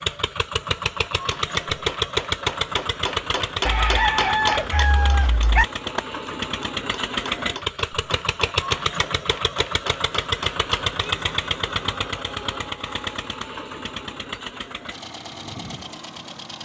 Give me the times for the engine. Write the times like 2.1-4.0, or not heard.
0.0-16.5.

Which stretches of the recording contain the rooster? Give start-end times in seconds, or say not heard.
3.6-5.7.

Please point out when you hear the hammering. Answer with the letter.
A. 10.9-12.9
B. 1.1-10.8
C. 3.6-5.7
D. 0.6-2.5
B.